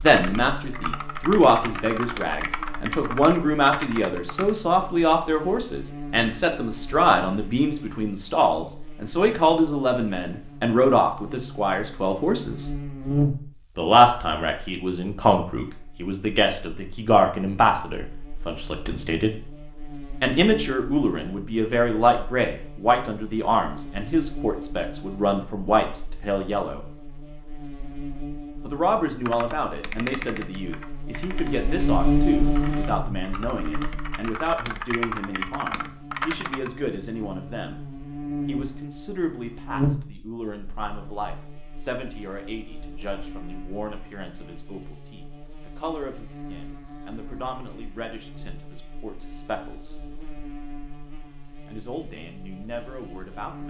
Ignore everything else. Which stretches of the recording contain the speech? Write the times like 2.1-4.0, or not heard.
0.0-12.7, 13.8-19.4, 20.2-26.9, 28.6-37.8, 38.5-50.0, 51.5-53.6.